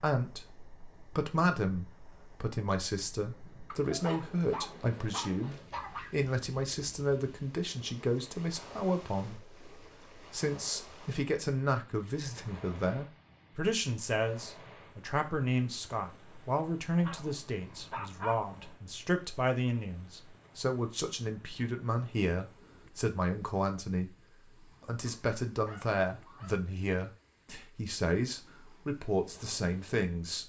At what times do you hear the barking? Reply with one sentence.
You can hear the barking from 3.7 to 6.2 s, from 16.9 to 18.8 s and from 25.1 to 26.6 s.